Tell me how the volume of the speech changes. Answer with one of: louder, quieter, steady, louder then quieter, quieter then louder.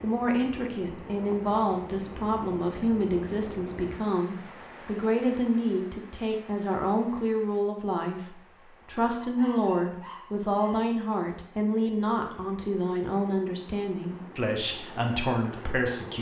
steady.